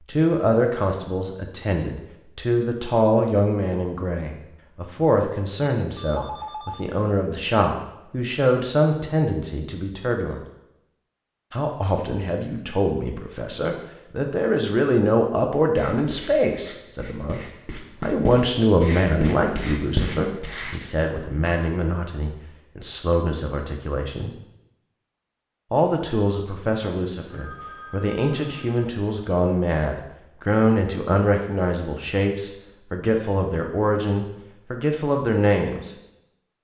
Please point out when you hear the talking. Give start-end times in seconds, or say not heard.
0.1-10.4, 11.5-17.4, 18.0-24.4, 25.7-35.9.